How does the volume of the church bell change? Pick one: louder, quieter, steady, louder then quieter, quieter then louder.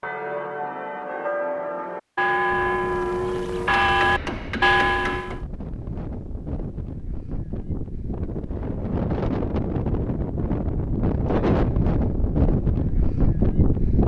louder.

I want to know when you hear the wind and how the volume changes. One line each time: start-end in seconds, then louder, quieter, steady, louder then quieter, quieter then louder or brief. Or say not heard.
2.5-14.0 louder.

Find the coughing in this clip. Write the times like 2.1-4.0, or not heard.
not heard.